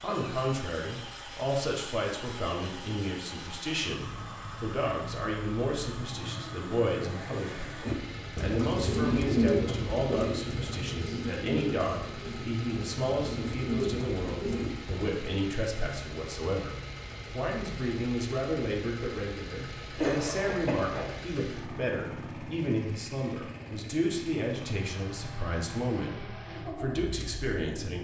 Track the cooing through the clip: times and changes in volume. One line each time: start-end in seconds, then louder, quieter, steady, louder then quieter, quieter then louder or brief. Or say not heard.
7.8-15.1 quieter then louder.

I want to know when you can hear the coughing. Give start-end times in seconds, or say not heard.
19.9-21.1.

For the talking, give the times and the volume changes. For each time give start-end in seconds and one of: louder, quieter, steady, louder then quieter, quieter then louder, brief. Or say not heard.
0.0-28.0 steady.